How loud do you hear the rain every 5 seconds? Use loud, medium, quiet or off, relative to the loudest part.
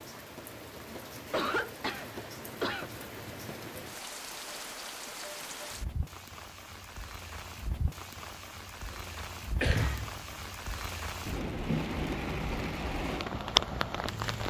medium, medium, loud.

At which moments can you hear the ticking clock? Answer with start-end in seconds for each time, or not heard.
not heard.